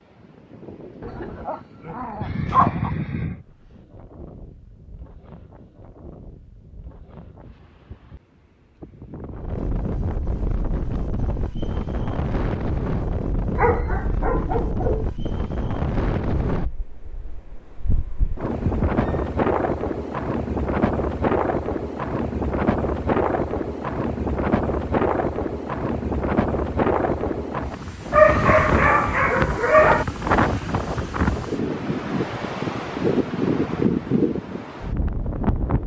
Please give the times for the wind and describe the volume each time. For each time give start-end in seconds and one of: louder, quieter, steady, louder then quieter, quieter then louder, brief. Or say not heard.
0.0-35.8 louder.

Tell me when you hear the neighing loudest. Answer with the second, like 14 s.
3 s.